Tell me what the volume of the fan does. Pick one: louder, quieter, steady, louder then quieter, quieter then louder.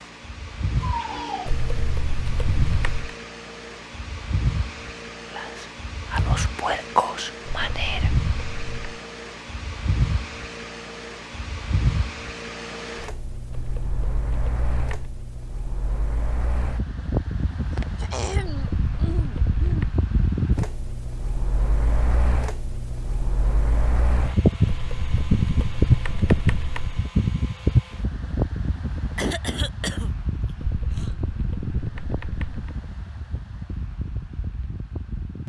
louder then quieter.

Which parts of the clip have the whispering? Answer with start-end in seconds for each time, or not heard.
5.2-8.1.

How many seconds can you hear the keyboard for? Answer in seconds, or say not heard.
11 s.